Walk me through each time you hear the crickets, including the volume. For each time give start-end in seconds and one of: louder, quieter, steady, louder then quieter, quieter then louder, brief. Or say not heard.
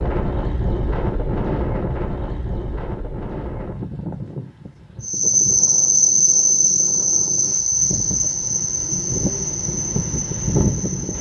5.0-11.1 quieter.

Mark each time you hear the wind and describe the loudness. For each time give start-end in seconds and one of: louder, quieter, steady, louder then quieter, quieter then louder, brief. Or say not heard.
0.0-11.1 quieter then louder.